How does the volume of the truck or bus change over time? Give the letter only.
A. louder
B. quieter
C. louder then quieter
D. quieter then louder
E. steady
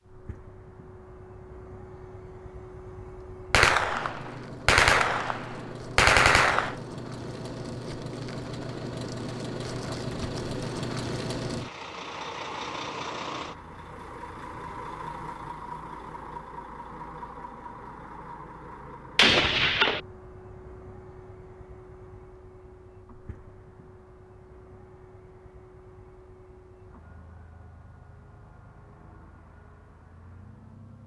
C.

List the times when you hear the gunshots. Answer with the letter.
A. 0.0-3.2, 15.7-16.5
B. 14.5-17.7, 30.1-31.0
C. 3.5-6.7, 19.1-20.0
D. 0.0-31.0
C.